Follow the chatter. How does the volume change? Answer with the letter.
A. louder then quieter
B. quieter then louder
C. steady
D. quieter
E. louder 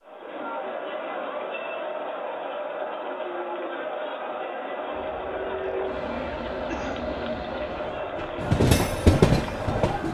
C.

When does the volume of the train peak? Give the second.
9 s.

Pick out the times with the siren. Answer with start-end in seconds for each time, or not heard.
not heard.